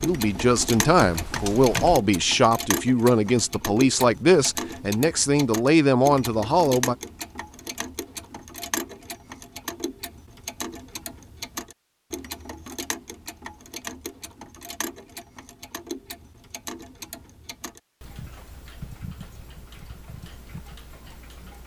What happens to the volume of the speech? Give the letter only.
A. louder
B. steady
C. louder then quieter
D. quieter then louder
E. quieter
B.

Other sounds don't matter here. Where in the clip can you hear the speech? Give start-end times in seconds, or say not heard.
0.0-7.0.